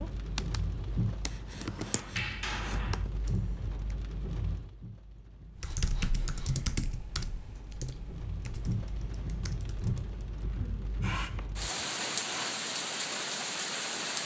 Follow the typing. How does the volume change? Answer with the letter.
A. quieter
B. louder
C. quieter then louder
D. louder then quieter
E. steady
D.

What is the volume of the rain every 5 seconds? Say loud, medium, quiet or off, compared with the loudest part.
medium, medium, loud.